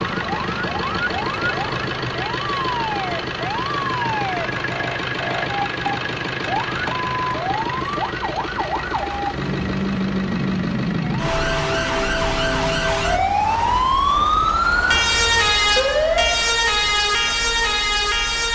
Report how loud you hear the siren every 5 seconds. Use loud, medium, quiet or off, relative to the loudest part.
medium, medium, loud, loud.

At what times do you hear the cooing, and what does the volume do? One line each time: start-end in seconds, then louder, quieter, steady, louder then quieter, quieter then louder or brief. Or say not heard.
not heard.